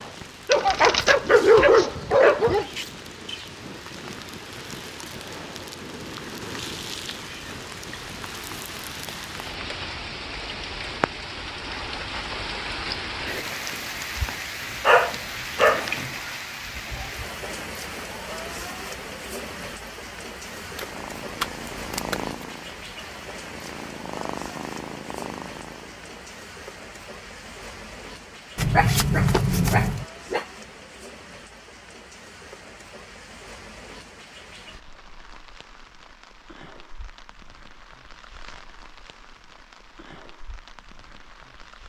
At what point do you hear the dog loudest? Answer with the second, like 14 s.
2 s.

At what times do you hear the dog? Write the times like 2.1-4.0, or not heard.
0.5-2.6, 14.8-16.1, 28.8-30.4.